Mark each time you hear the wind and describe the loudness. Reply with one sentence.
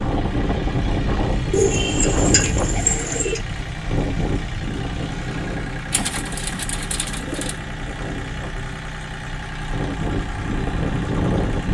The wind can be heard from 0.0 to 11.7 s, getting quieter then louder.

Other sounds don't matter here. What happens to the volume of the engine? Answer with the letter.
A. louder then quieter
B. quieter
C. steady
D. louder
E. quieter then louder
C.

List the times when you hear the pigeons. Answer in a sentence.
The pigeons can be heard from 1.5 to 3.4 s and from 5.9 to 7.5 s.